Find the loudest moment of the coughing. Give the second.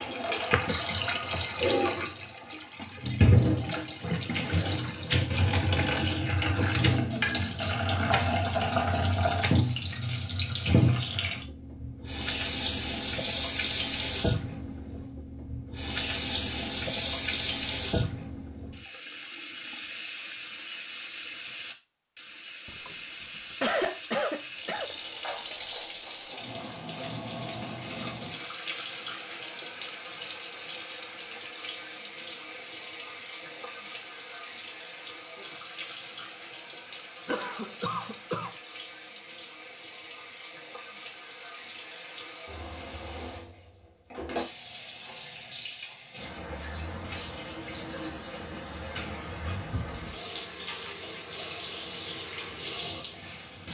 24 s.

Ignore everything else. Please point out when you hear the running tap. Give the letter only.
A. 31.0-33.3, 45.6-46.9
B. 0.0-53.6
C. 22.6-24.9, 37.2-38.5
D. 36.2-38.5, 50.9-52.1
B.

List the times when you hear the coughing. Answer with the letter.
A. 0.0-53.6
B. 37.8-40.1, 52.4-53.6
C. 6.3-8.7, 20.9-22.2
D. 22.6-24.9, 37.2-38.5
D.